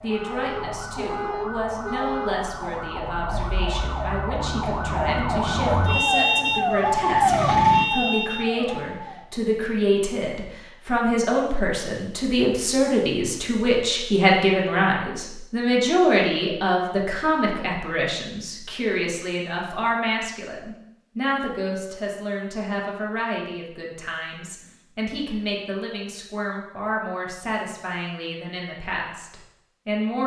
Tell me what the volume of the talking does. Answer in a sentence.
The volume of the talking goes up, then down.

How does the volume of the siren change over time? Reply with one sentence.
The volume of the siren goes up.